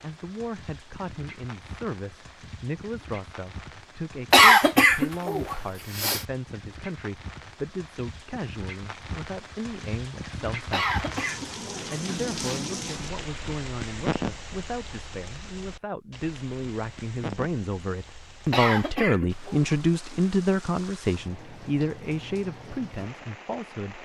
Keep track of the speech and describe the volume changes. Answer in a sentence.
The loudness of the speech goes up.